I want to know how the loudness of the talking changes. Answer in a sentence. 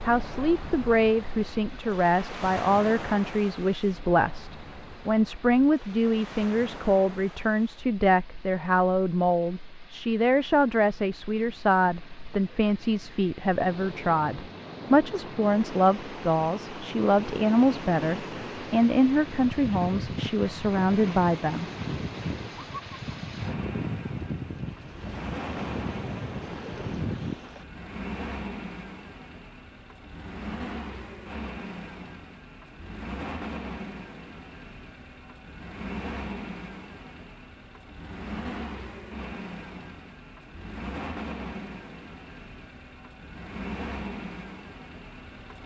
The volume of the talking stays about the same.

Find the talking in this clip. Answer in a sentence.
You can hear the talking from 0.1 to 21.7 s.